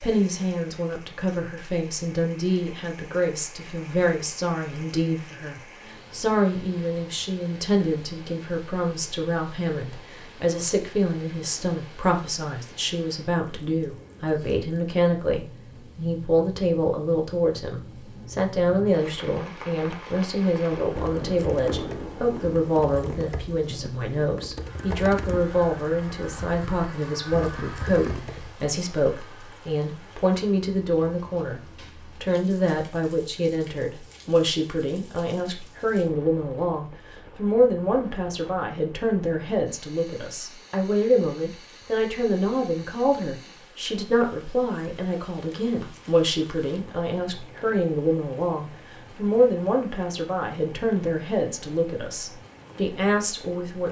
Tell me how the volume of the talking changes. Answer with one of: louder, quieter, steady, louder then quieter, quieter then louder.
steady.